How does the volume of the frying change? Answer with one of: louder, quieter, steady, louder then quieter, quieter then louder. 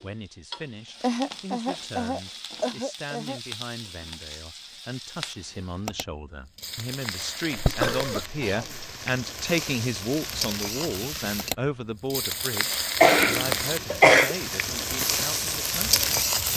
louder.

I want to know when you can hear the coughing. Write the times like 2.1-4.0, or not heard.
1.0-3.4, 7.5-8.9, 13.0-14.3.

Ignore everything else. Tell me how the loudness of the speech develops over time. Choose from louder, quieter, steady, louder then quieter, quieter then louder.
louder then quieter.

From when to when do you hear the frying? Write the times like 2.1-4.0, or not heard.
0.0-16.5.